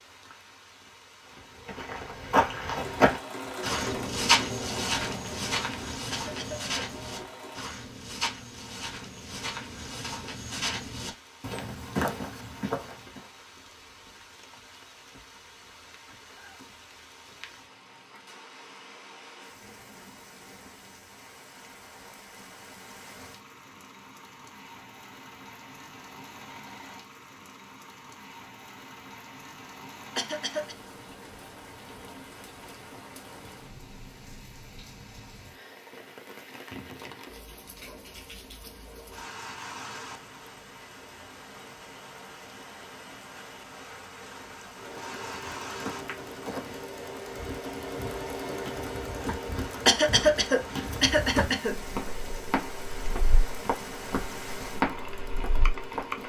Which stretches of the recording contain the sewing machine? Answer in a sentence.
You can hear the sewing machine from 2.7 to 7.7 s and from 44.8 to 56.2 s.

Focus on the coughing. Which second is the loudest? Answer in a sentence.
The loudest moment of the coughing is at 50 seconds.